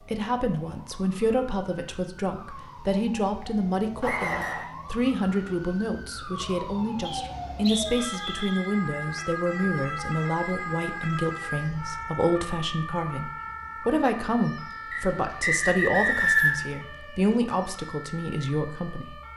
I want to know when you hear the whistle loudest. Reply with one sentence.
The volume of the whistle peaks at 16 seconds.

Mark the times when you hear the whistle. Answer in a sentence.
You can hear the whistle from 4.0 to 4.7 s, from 7.0 to 8.7 s and from 14.9 to 16.6 s.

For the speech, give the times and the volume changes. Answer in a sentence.
You can hear the speech from 0.0 to 19.3 s, at a steady volume.